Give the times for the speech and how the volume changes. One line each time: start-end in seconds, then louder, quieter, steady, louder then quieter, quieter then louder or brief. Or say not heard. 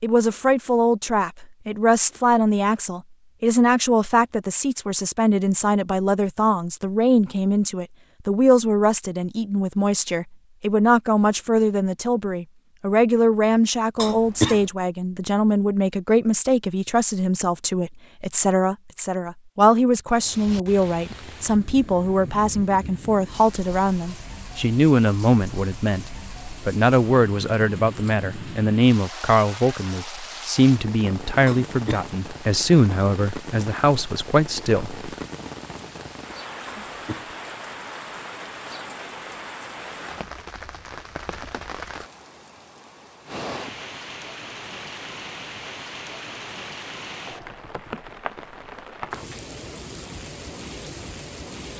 0.0-35.0 steady.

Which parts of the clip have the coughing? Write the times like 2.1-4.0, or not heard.
13.9-14.7, 31.4-32.0, 36.6-37.4.